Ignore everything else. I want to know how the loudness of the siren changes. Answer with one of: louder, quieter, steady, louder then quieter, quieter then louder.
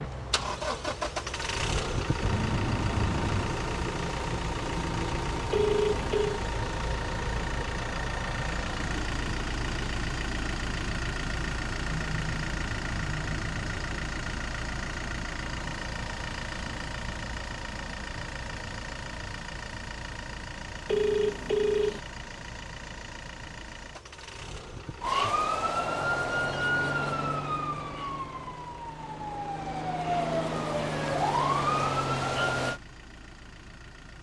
quieter then louder.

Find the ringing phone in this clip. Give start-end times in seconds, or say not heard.
5.5-6.4, 20.9-22.0.